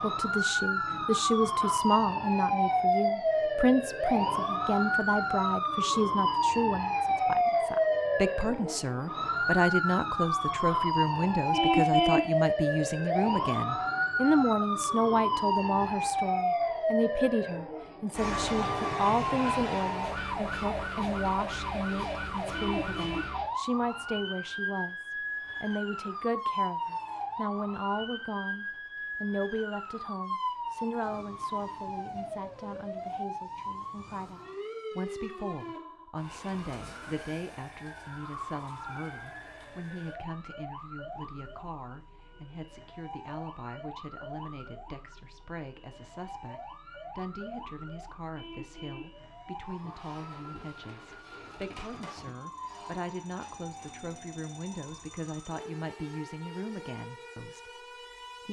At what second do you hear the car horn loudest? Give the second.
12 s.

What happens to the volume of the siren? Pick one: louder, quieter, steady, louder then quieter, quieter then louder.
quieter.